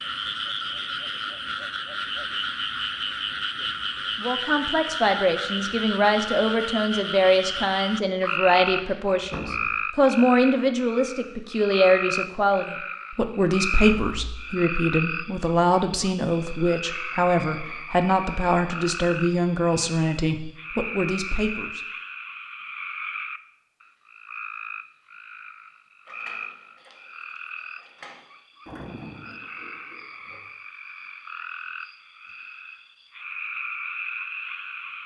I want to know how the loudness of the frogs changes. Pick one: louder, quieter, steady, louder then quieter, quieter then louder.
quieter.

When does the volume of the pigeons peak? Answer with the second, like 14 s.
29 s.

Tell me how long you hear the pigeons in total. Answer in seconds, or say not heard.
2 s.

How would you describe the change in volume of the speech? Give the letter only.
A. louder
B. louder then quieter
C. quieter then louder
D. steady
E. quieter
D.